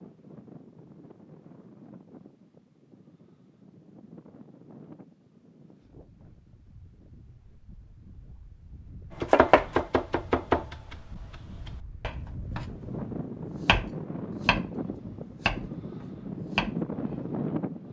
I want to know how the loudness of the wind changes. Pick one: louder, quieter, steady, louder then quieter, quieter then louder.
louder.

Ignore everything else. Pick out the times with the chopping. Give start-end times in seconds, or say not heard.
9.2-10.9, 11.7-17.3.